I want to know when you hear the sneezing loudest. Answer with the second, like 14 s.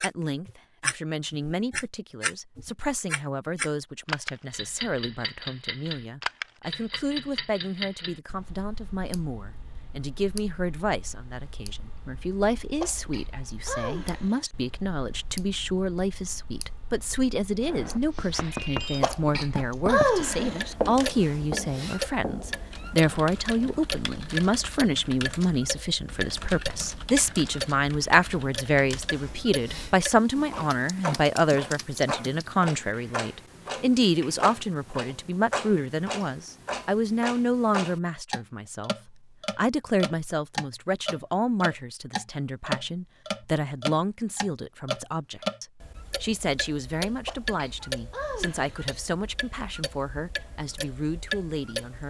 20 s.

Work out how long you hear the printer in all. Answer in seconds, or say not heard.
not heard.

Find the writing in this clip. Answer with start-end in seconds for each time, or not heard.
17.6-23.9.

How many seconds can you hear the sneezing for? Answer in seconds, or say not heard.
5 s.